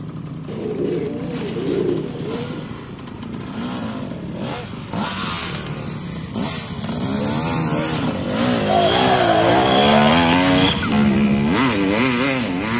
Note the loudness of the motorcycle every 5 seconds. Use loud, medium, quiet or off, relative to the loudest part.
quiet, loud, loud.